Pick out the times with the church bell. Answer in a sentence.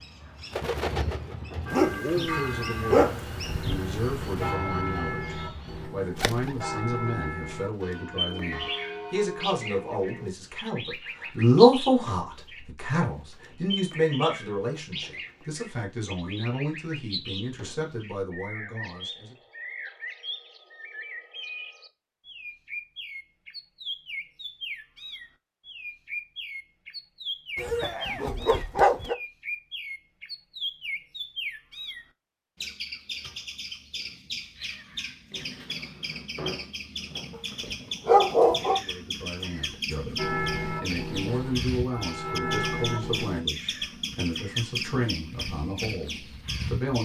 The church bell can be heard from 1.6 to 10.3 s and from 40.1 to 43.4 s.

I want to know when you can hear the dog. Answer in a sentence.
The dog can be heard from 1.7 to 4.5 s, from 27.6 to 29.1 s and from 37.6 to 38.8 s.